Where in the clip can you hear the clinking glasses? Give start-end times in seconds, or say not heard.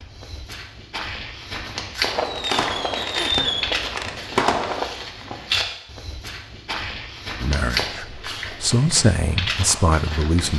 not heard.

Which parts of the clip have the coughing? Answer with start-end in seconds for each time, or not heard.
3.0-3.5.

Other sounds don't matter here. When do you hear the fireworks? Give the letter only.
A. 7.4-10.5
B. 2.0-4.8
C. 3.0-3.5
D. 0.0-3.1
B.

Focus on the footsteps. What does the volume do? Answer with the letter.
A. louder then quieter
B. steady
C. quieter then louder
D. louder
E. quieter
B.